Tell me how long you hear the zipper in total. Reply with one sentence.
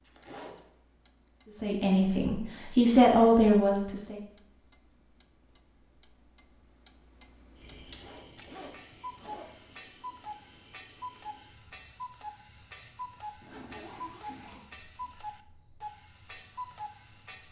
The zipper can be heard for 4 seconds in total.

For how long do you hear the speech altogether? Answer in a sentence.
The speech can be heard for 3 seconds in total.